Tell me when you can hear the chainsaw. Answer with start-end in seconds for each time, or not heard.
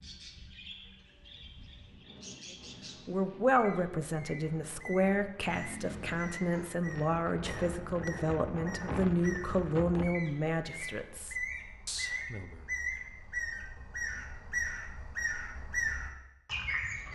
not heard.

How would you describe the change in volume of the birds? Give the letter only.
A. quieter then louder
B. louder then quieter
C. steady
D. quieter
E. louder
E.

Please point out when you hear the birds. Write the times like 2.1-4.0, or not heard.
0.0-17.1.